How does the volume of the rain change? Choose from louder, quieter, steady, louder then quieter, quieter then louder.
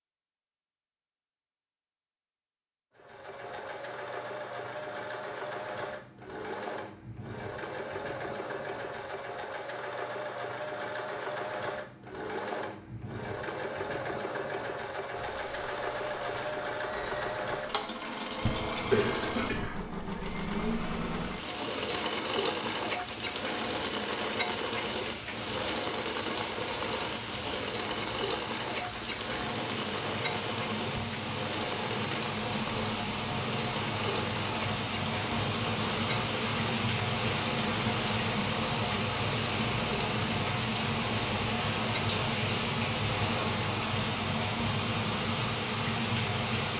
louder.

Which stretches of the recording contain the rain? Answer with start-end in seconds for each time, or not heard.
15.2-46.7.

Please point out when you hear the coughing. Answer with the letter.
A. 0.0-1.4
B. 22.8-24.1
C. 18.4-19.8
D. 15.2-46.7
C.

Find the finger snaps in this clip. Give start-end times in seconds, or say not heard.
not heard.